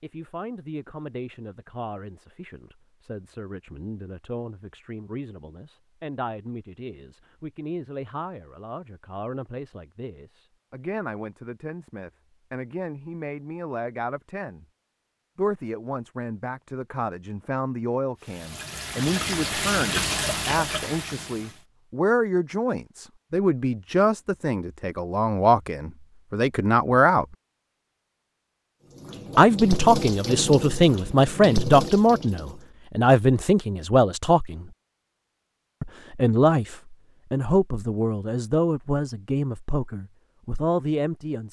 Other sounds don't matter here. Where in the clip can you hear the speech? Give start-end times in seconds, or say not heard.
0.0-14.7, 15.3-27.2, 29.4-34.7, 35.8-41.4.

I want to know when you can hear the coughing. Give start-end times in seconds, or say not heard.
not heard.